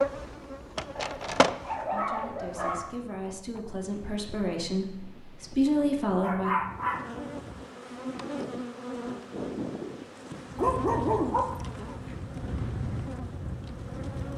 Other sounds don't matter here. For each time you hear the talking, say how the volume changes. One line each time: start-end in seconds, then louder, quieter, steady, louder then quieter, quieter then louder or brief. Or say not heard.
1.8-6.5 louder.